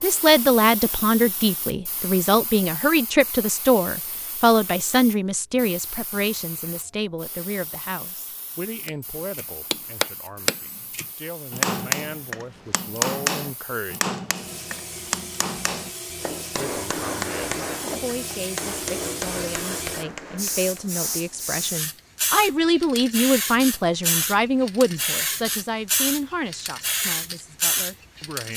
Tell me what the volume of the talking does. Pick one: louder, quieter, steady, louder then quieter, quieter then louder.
quieter then louder.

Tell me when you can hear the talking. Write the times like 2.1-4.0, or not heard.
0.0-14.1, 16.6-28.5.